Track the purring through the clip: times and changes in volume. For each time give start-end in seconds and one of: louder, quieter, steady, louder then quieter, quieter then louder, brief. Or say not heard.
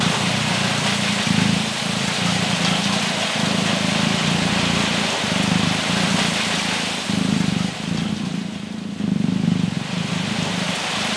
0.0-11.1 steady.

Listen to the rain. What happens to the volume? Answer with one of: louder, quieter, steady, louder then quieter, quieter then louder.
quieter.